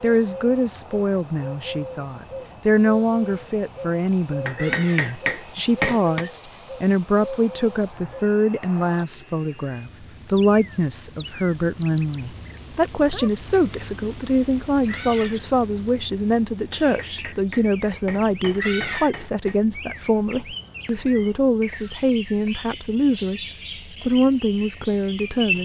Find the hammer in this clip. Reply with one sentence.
You can hear the hammer from 4.5 to 6.2 s and from 16.7 to 19.6 s.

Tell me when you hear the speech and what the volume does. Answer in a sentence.
The speech can be heard from 0.0 to 25.6 s, at a steady volume.